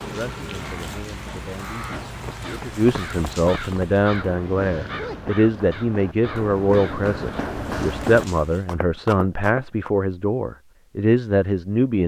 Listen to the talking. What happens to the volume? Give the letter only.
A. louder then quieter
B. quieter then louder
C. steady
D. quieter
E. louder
E.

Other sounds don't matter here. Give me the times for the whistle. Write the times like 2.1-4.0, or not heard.
not heard.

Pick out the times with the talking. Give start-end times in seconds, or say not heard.
0.0-12.0.